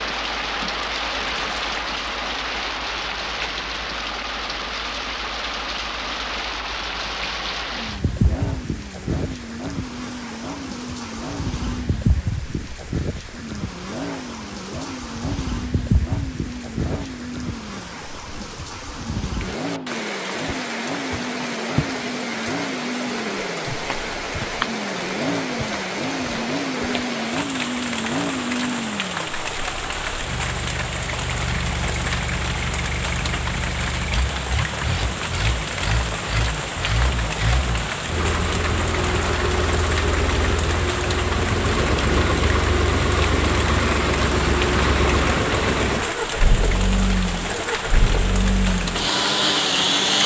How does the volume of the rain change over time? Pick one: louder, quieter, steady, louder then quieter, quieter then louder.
steady.